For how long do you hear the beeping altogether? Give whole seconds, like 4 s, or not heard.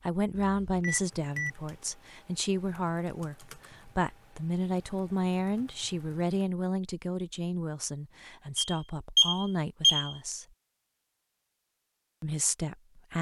3 s.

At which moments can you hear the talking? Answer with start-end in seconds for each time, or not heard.
0.0-10.4, 12.2-13.1.